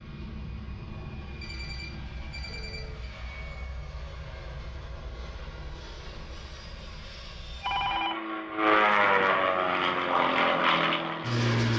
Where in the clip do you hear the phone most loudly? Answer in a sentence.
The loudest moment of the phone is at 8 seconds.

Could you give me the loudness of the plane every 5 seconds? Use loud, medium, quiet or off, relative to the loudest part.
quiet, loud, loud.